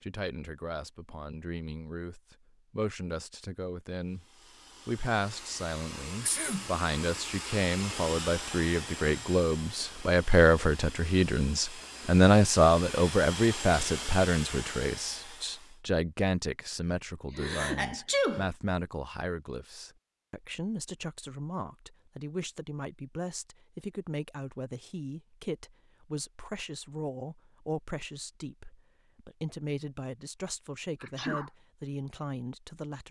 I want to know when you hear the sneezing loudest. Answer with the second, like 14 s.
18 s.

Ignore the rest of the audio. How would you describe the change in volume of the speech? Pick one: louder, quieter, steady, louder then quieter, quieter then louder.
louder then quieter.